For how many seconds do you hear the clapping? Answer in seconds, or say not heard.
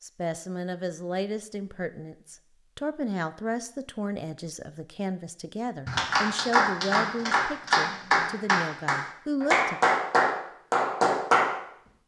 6 s.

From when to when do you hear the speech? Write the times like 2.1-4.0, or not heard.
0.0-9.8.